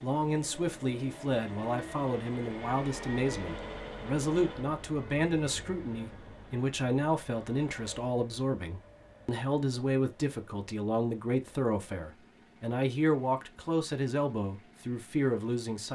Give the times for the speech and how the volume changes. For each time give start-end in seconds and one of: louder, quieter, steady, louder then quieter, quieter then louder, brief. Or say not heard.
0.0-15.8 steady.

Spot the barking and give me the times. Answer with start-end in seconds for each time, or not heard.
not heard.